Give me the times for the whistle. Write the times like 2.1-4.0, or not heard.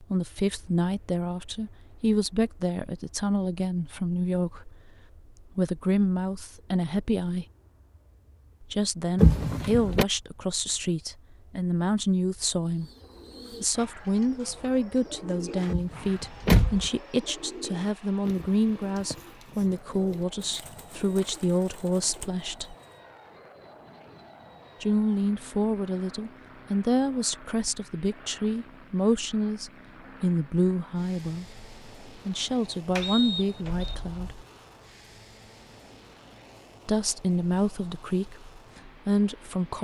33.0-34.0.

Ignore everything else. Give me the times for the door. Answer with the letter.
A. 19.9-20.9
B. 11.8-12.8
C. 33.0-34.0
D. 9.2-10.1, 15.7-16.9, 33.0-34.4
D.